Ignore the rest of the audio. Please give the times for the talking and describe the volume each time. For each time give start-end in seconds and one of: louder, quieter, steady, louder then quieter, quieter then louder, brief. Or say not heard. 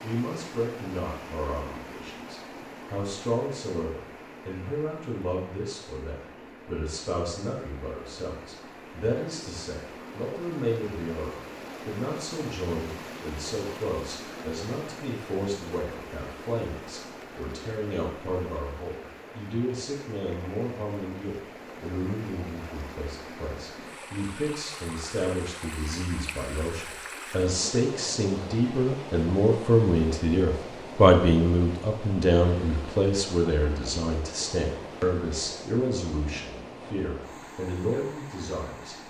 0.0-39.0 louder.